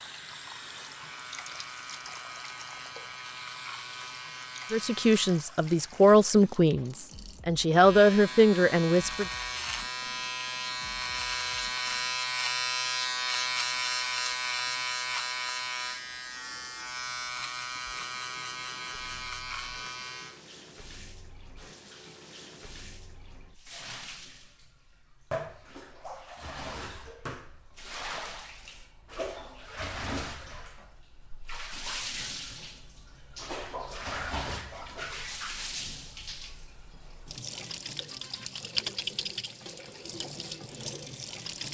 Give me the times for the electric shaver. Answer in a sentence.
You can hear the electric shaver from 0.1 to 5.5 s and from 7.7 to 20.4 s.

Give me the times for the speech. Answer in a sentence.
You can hear the speech from 4.7 to 9.2 s.